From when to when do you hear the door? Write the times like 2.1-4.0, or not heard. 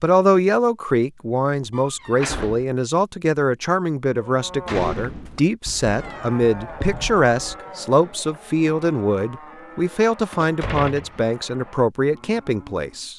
1.7-2.6, 4.7-5.5, 10.3-11.2.